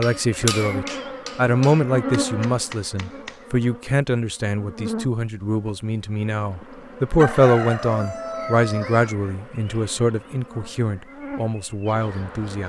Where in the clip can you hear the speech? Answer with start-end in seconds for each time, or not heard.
0.0-12.6.